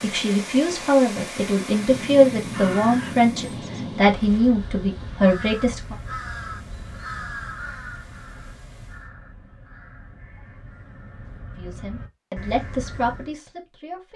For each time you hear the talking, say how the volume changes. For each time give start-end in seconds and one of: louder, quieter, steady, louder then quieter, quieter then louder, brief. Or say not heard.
0.0-6.0 steady
11.6-14.1 brief.